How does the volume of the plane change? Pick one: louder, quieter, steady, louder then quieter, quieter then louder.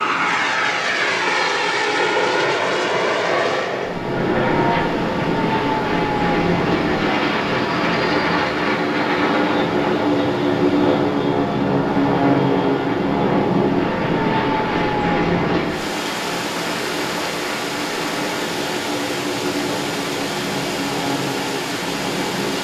quieter.